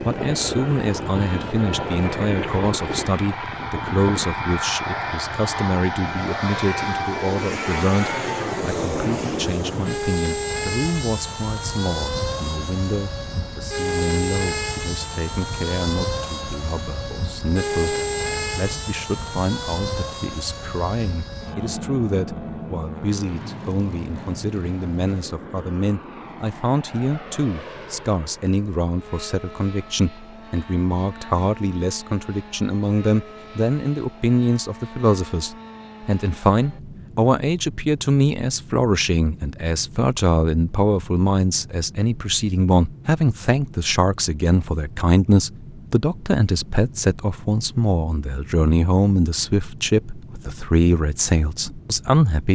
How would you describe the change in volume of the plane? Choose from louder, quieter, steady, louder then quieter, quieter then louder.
quieter.